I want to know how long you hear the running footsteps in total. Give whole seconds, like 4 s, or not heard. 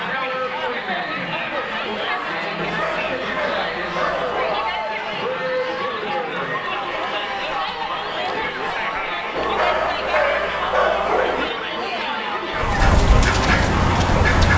not heard.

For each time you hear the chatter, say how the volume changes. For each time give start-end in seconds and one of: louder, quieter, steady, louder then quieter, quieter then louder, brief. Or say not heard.
0.0-14.5 steady.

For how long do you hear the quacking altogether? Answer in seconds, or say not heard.
2 s.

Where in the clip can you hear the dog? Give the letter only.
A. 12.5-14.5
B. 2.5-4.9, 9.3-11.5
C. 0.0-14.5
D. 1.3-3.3
B.